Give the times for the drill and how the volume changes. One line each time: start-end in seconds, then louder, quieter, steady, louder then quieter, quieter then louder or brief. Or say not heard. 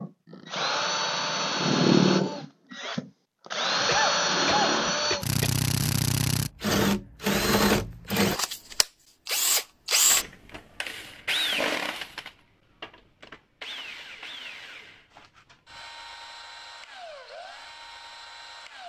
0.0-18.8 quieter.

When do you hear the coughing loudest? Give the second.
4 s.